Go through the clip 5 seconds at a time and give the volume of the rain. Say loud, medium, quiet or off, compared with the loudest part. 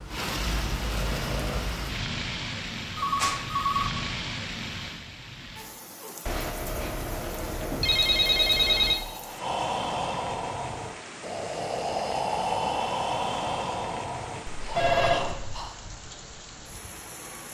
loud, medium, medium, medium.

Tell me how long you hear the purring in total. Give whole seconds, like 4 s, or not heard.
2 s.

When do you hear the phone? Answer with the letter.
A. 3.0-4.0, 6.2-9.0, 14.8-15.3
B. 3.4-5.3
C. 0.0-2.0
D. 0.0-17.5
A.